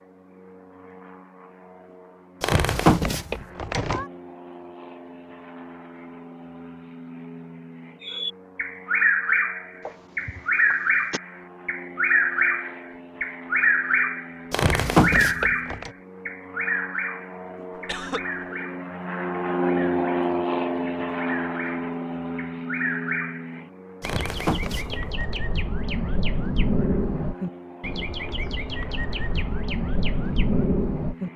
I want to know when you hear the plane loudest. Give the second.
20 s.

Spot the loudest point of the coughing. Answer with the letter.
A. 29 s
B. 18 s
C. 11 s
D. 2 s
B.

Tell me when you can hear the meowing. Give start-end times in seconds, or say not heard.
2.4-4.0, 14.5-15.9, 24.0-25.4.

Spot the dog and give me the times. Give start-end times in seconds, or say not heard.
not heard.